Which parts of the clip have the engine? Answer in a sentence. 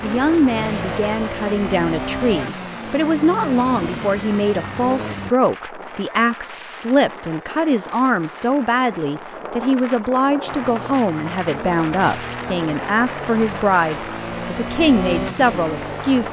The engine can be heard from 0.0 to 5.3 s and from 10.4 to 16.2 s.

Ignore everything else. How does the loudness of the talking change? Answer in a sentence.
The volume of the talking stays about the same.